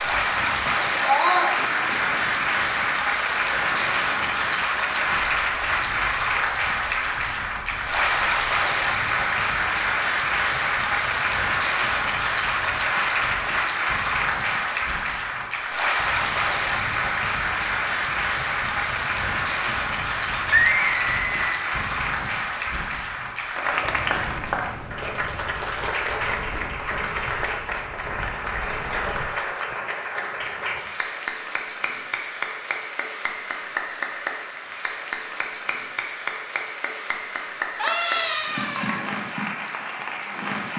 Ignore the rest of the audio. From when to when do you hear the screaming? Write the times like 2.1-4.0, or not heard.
1.0-1.6, 20.3-21.5, 37.8-39.1.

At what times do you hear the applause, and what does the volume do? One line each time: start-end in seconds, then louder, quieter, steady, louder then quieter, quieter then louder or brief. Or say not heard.
0.0-40.7 quieter.